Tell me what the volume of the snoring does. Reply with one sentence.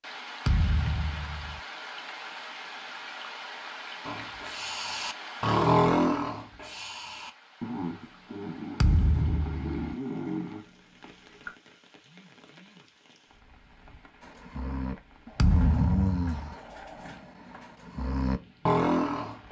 The volume of the snoring goes down, then up.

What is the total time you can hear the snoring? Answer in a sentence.
You can hear the snoring for 13 seconds altogether.